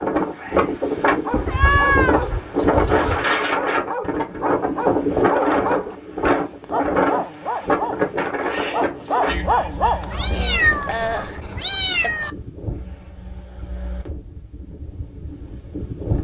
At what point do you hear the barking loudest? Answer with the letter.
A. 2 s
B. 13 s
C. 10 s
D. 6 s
C.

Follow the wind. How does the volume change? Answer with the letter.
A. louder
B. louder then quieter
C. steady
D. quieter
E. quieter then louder
D.